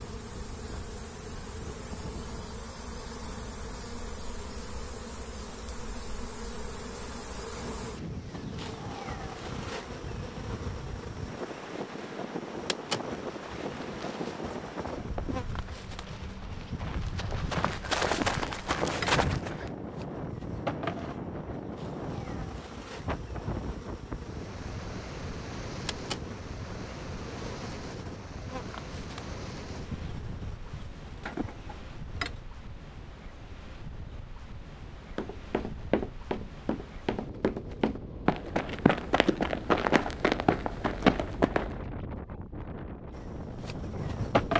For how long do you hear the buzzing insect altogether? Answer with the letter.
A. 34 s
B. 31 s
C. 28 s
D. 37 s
A.